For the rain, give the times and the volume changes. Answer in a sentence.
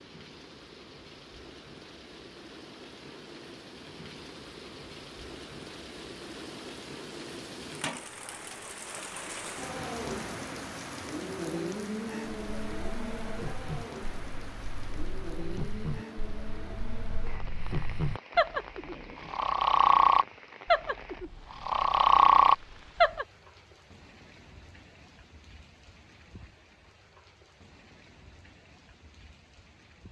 The rain can be heard from 0.0 to 30.0 s, getting louder then quieter.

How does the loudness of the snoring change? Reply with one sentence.
The loudness of the snoring goes up.